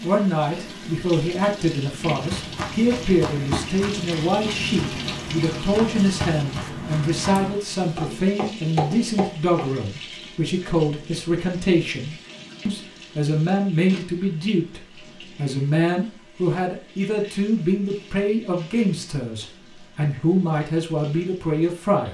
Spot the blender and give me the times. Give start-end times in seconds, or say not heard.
not heard.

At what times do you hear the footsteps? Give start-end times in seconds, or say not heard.
2.0-9.6.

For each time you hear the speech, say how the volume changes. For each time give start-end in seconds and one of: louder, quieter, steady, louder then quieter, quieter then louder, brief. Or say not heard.
0.0-22.0 steady.